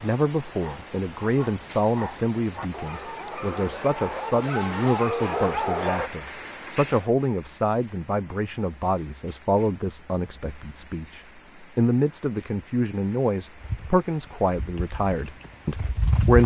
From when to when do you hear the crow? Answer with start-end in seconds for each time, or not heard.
not heard.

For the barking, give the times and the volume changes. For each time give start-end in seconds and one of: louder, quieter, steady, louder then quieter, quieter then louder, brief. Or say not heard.
0.6-6.1 louder.